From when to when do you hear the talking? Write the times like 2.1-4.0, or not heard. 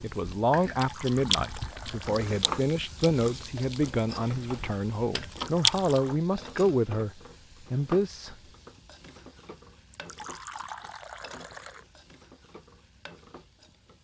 0.0-7.1, 7.7-8.3.